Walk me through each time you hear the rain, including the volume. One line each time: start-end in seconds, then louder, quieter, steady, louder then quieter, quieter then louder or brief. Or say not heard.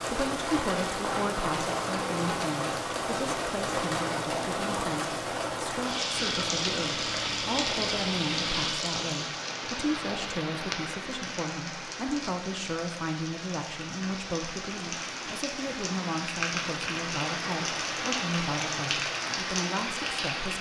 0.0-20.5 quieter then louder.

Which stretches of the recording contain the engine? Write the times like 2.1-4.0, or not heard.
6.1-8.7.